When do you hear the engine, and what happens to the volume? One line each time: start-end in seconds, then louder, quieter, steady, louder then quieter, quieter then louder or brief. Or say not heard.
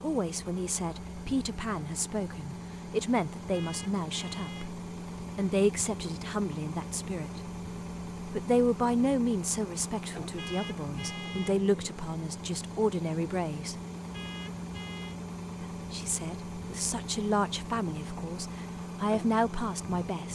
0.0-20.3 steady.